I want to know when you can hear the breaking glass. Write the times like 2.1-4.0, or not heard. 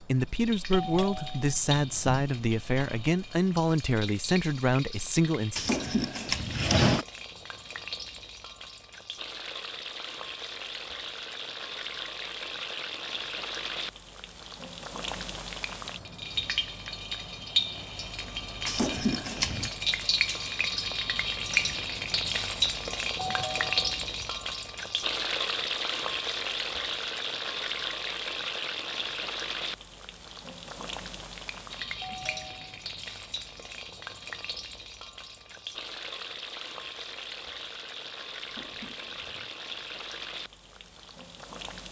not heard.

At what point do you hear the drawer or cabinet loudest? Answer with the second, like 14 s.
7 s.